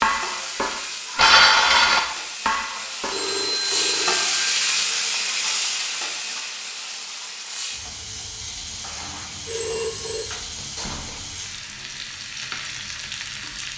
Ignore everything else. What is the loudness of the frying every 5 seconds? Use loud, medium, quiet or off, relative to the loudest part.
loud, loud, medium.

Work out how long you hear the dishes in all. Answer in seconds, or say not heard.
3 s.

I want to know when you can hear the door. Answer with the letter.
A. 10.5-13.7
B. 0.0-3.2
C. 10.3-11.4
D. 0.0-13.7
C.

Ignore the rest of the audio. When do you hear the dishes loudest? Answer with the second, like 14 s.
1 s.